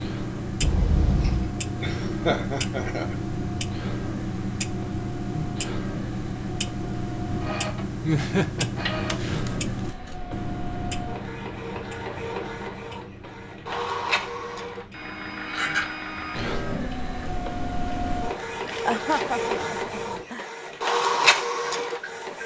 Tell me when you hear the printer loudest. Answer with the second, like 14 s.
21 s.